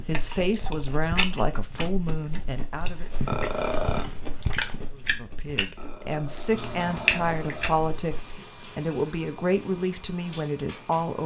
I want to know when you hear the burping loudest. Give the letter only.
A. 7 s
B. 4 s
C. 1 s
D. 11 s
B.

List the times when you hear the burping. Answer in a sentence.
The burping can be heard from 3.2 to 4.0 s and from 5.8 to 7.8 s.